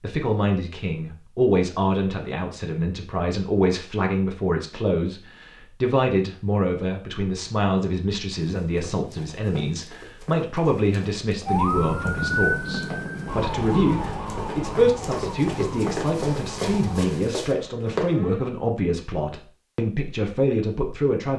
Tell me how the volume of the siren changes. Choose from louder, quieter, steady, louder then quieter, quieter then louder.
quieter.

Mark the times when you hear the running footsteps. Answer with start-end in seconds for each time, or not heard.
8.4-18.1.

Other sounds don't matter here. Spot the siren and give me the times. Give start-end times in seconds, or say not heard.
11.4-18.4.